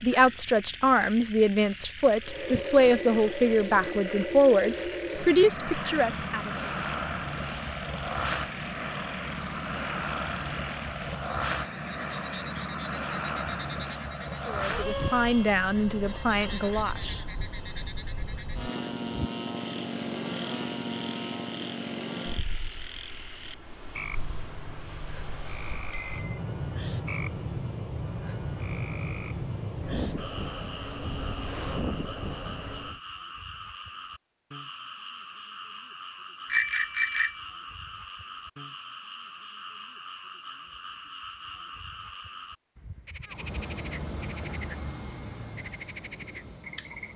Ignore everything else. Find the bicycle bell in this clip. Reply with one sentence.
You can hear the bicycle bell from 2.5 to 4.4 s, from 25.9 to 26.4 s and from 36.5 to 37.4 s.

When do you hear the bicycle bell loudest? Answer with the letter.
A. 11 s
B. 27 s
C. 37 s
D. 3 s
C.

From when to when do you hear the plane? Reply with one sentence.
The plane can be heard from 2.2 to 33.0 s and from 43.3 to 47.1 s.